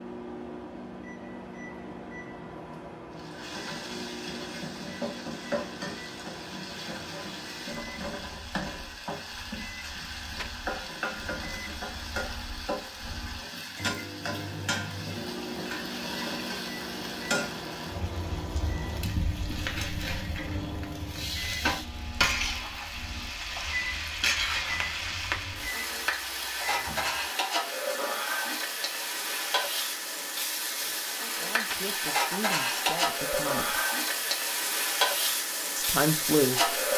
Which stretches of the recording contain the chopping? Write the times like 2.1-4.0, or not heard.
not heard.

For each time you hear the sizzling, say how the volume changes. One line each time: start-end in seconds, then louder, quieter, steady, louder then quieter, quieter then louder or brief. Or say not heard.
3.1-36.9 louder.